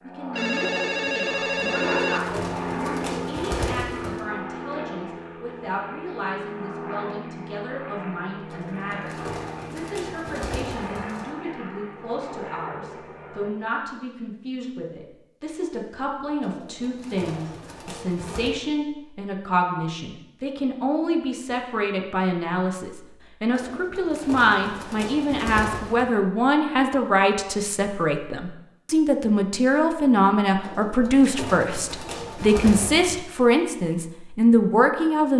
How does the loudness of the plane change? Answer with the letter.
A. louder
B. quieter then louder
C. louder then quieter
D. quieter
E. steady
D.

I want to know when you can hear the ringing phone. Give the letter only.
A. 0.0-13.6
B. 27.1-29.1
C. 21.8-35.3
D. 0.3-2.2
D.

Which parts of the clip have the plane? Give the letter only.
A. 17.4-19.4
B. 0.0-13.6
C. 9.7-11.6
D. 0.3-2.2
B.